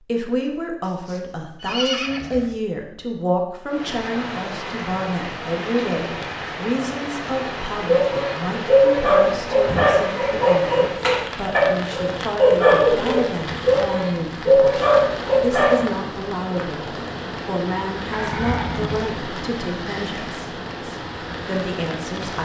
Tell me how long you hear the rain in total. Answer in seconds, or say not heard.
19 s.